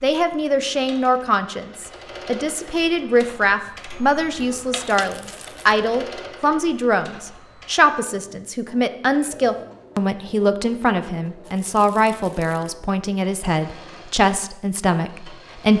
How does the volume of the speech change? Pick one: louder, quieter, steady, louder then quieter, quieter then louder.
steady.